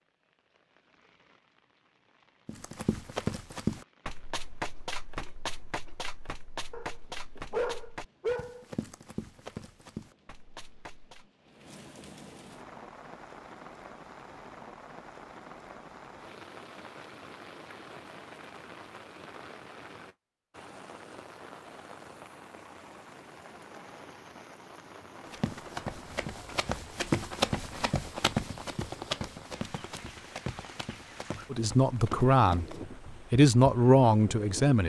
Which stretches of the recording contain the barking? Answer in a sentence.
The barking can be heard from 6.7 to 8.7 s.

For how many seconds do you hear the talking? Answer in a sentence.
The talking can be heard for 3 seconds in total.